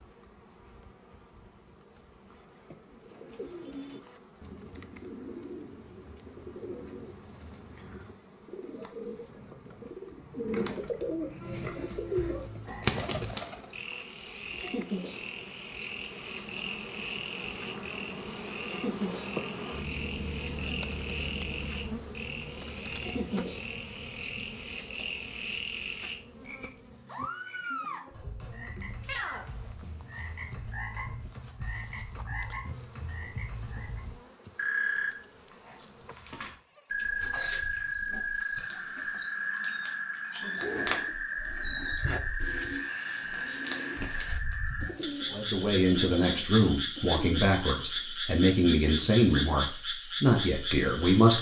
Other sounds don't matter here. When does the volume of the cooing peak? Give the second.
13 s.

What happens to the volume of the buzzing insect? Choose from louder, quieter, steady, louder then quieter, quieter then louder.
louder then quieter.